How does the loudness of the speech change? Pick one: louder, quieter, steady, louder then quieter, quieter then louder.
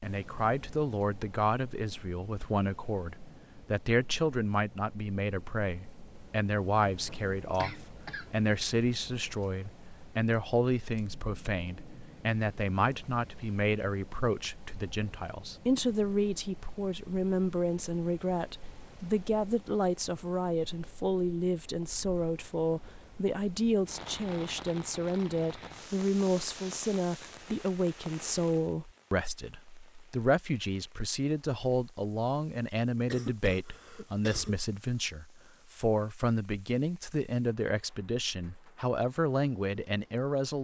steady.